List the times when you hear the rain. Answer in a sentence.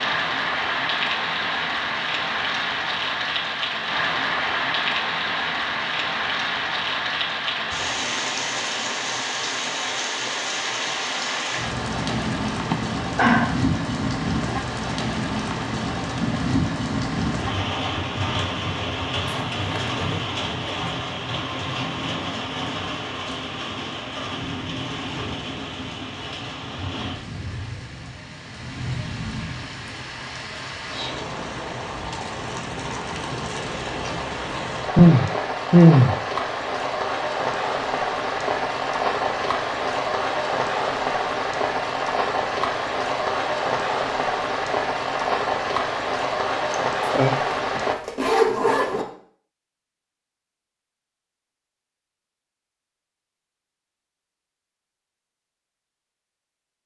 The rain can be heard from 0.0 to 48.0 s.